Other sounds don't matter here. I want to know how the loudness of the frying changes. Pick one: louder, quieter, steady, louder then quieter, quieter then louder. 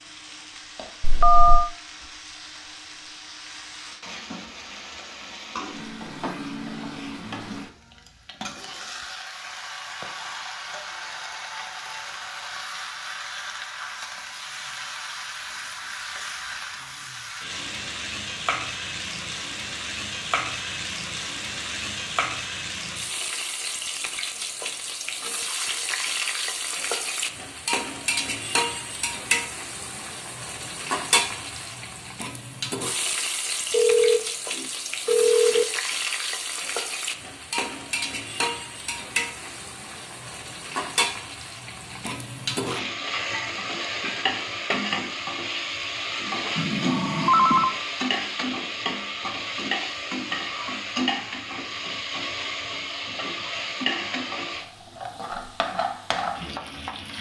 louder.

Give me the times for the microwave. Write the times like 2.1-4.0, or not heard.
not heard.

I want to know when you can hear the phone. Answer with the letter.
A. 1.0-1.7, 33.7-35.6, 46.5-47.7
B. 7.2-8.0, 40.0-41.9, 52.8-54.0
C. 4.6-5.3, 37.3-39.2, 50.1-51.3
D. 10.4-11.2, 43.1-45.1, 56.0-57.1
A.